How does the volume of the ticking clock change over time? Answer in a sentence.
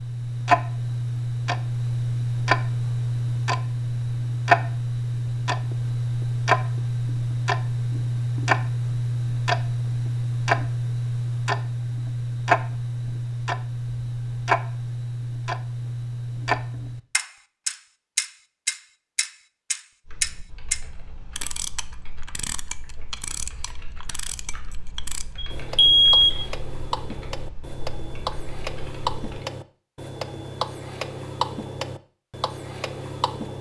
The loudness of the ticking clock goes down.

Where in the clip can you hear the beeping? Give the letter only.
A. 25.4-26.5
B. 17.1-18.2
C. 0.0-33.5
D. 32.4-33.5
A.